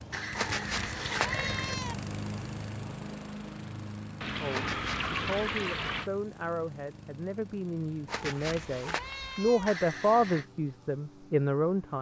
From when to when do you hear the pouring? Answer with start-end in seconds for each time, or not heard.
0.1-1.8, 4.2-6.1, 9.7-10.4.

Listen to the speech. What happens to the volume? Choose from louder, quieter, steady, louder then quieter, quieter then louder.
louder.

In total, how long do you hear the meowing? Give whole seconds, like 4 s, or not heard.
4 s.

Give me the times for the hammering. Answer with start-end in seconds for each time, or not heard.
not heard.